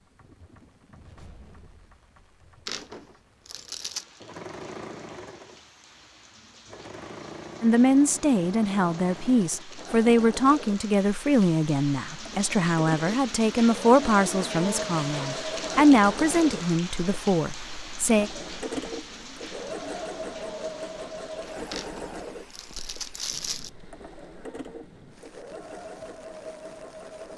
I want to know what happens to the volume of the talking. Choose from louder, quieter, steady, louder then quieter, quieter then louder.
steady.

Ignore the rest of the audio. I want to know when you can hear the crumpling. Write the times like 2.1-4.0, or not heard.
2.6-4.0, 21.7-23.7.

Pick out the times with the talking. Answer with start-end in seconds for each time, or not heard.
7.6-18.3.